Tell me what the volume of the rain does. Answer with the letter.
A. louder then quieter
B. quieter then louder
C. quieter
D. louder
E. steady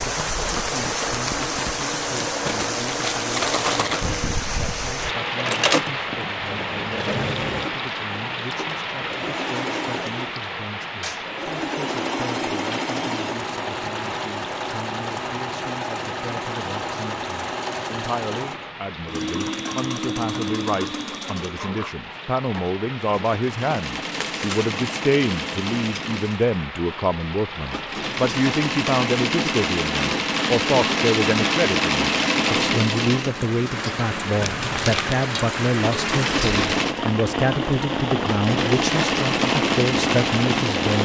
B.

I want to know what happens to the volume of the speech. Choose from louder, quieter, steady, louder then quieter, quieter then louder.
louder.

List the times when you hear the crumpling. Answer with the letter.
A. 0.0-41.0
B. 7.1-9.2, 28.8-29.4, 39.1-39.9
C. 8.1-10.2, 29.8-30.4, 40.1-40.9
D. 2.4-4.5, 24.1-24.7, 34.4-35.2
D.